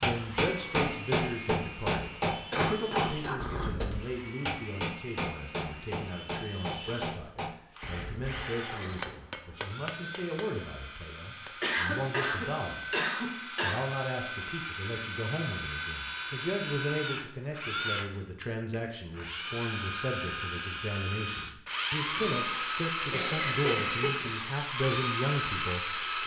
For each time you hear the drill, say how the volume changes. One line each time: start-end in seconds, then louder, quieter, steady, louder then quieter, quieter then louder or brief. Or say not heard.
0.0-26.2 louder.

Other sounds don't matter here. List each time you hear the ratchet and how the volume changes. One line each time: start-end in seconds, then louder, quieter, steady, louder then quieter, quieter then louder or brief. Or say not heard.
not heard.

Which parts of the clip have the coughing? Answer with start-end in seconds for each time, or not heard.
2.5-3.9, 11.6-13.9, 23.1-24.3.